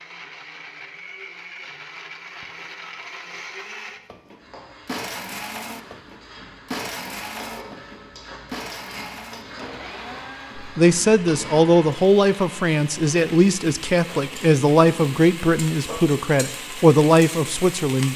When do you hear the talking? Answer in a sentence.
The talking can be heard from 10.6 to 18.1 s.